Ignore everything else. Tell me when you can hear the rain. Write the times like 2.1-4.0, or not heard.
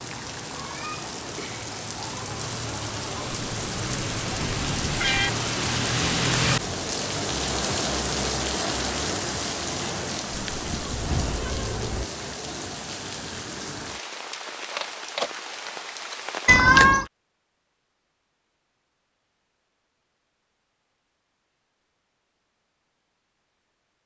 0.0-16.6.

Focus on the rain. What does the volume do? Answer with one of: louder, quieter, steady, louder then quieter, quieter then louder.
louder then quieter.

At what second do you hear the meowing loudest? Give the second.
17 s.